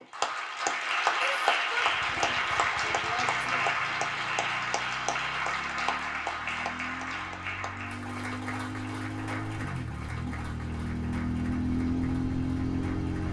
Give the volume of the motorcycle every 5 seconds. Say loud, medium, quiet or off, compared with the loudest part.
quiet, medium, loud.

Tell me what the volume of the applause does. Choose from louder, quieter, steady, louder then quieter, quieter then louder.
quieter.